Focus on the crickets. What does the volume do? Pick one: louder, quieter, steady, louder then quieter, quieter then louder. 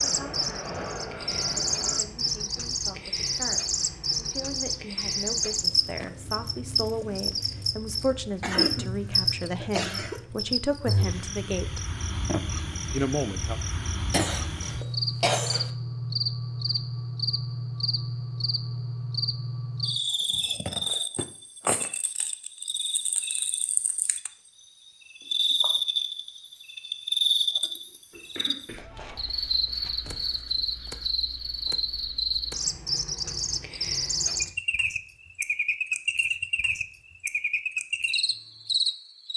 steady.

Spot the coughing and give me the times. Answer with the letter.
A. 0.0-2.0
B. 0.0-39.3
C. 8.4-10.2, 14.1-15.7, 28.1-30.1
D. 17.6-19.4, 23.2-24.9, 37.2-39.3
C.